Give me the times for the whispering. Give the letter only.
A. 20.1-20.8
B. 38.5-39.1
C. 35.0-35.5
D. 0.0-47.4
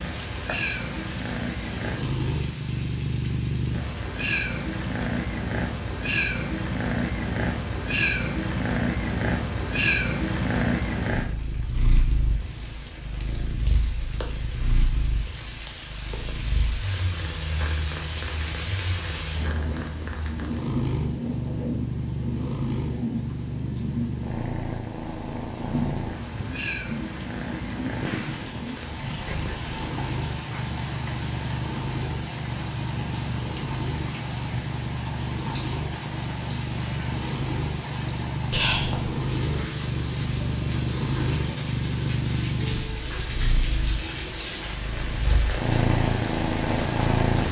B.